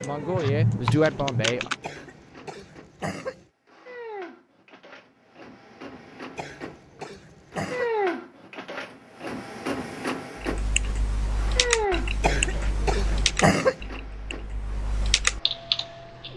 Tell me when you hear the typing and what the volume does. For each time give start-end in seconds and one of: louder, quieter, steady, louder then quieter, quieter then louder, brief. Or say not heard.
0.0-1.8 brief
10.4-16.3 quieter then louder.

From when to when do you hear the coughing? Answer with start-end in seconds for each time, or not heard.
1.8-3.5, 6.3-7.9, 12.2-13.8.